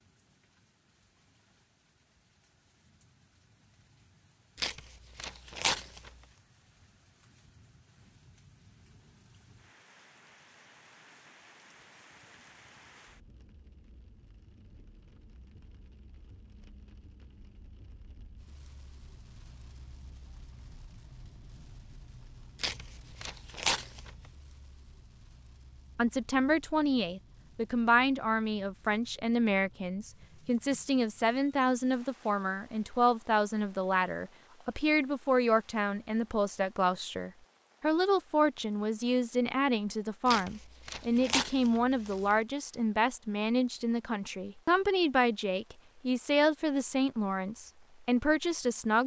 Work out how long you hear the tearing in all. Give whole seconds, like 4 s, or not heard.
5 s.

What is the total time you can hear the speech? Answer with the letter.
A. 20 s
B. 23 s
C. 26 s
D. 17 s
B.